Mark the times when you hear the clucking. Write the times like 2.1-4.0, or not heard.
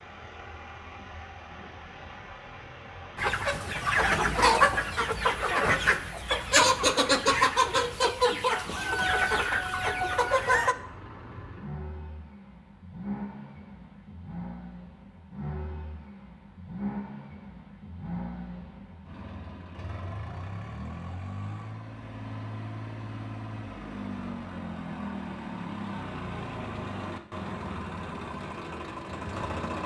3.1-10.8.